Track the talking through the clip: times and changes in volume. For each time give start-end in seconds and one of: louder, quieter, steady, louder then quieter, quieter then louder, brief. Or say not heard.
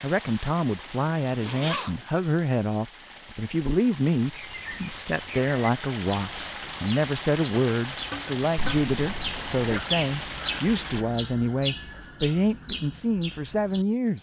0.0-14.1 steady.